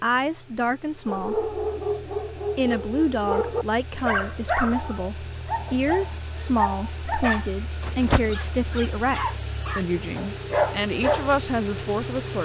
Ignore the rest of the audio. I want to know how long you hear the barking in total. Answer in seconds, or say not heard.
10 s.